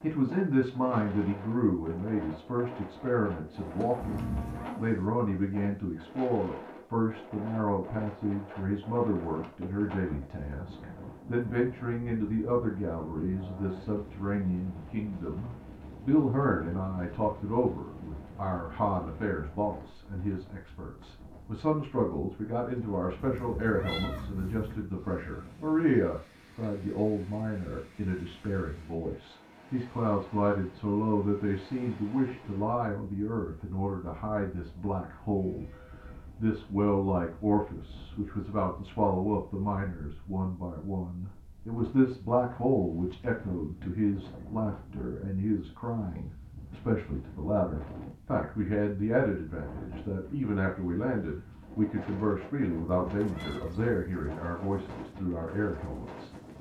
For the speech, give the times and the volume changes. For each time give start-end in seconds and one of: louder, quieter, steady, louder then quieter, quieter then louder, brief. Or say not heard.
0.0-35.7 steady
36.4-56.3 steady.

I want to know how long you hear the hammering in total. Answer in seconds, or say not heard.
not heard.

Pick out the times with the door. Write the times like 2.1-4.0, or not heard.
not heard.